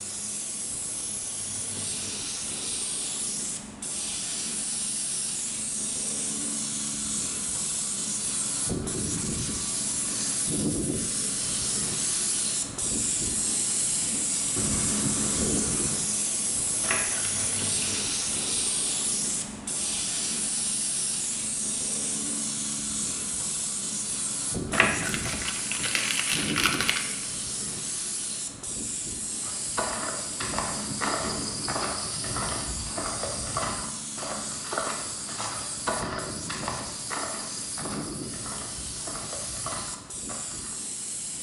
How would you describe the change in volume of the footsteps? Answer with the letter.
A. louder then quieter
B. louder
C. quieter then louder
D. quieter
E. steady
D.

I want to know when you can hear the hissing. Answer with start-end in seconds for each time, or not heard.
0.0-41.3.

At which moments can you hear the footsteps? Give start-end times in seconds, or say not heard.
29.4-40.8.